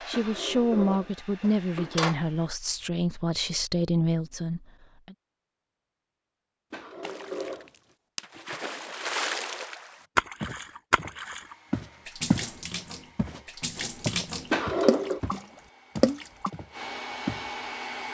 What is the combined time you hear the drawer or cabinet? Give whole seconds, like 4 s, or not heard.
4 s.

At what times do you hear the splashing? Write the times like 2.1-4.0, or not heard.
7.0-16.5.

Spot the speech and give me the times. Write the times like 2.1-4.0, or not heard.
0.1-5.2.